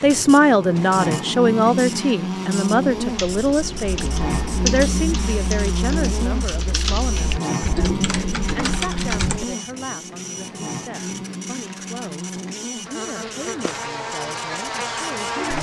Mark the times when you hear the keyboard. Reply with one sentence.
The keyboard can be heard from 3.0 to 9.6 s.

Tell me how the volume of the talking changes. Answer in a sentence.
The loudness of the talking goes down.